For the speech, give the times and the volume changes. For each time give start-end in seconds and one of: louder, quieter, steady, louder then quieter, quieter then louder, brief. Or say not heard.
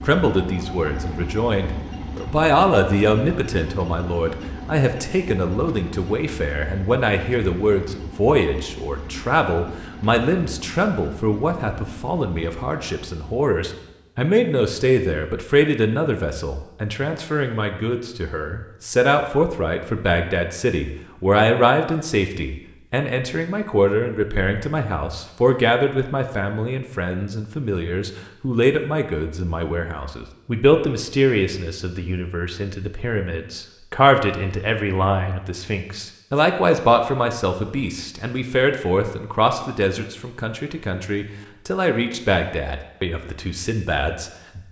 0.0-44.6 steady.